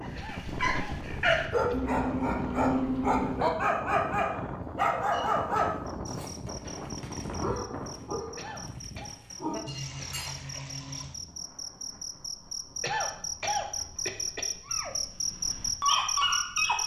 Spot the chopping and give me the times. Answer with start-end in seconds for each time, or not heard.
not heard.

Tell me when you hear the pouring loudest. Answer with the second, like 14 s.
3 s.